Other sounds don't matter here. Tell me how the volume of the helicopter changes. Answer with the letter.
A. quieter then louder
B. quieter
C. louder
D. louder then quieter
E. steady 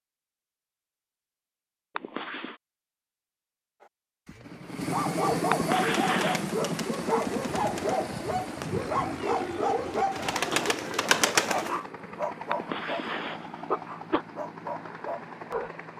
B.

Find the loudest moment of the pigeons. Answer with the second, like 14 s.
11 s.